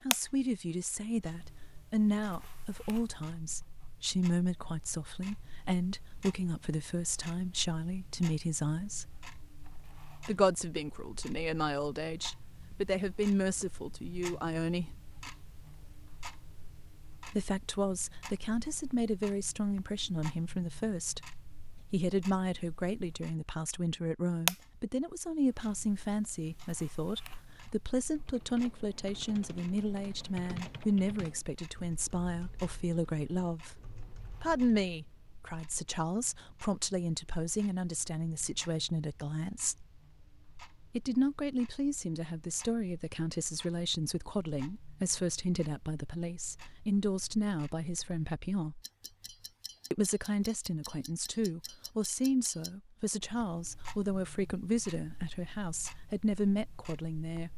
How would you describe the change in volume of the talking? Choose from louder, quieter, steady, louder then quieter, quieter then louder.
steady.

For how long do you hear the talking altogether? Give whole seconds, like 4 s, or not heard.
51 s.